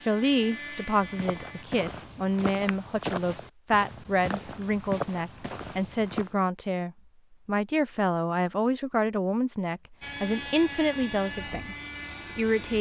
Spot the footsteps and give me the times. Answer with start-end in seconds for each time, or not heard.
0.9-6.3.